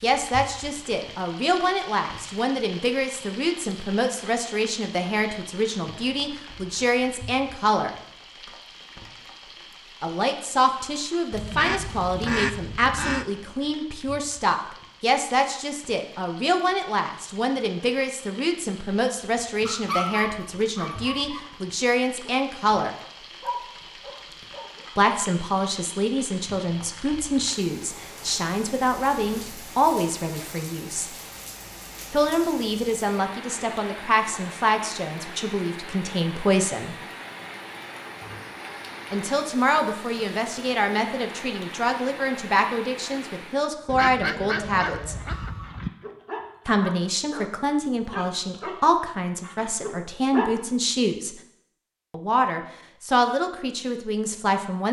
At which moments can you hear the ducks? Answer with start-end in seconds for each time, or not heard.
11.3-13.2, 43.9-45.9.